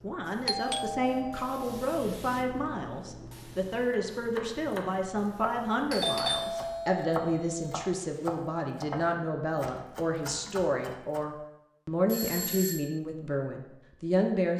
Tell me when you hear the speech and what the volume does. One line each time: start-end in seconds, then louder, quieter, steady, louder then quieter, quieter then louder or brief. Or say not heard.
0.0-14.5 steady.